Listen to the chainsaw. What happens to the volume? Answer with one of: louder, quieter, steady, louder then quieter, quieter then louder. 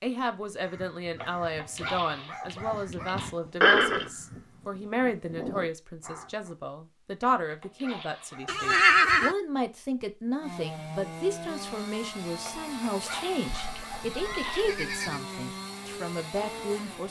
steady.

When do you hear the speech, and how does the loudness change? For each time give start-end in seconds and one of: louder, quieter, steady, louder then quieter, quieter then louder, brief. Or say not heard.
0.0-17.0 steady.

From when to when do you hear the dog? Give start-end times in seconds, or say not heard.
1.2-3.3, 7.4-8.7, 12.4-14.7.